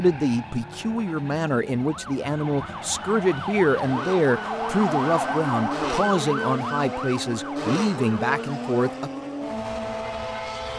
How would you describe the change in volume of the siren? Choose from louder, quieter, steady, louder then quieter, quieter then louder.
louder then quieter.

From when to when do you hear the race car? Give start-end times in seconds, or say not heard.
0.0-10.7.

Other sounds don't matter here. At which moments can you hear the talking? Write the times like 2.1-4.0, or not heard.
0.0-9.1.